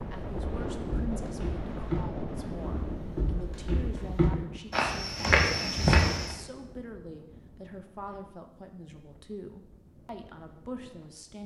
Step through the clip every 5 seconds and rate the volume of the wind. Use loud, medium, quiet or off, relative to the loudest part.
loud, quiet, quiet.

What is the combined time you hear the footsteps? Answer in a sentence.
The footsteps can be heard for 6 seconds in total.